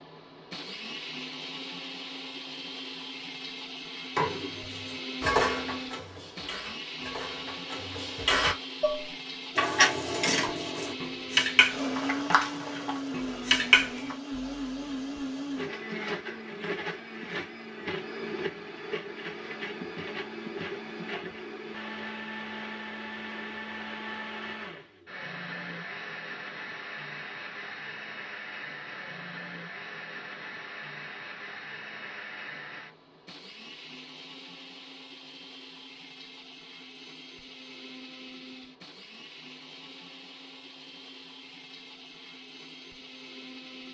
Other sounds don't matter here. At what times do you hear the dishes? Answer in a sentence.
The dishes can be heard from 4.2 to 14.2 s.